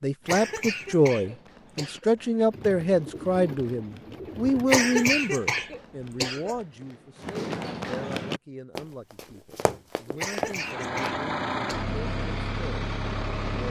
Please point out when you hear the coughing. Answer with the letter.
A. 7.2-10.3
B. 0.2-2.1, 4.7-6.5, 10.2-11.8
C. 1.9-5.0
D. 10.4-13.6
B.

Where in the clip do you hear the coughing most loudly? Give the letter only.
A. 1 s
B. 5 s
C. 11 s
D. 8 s
B.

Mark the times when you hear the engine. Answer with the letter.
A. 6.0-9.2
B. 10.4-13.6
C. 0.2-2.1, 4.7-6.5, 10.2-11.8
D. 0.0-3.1
B.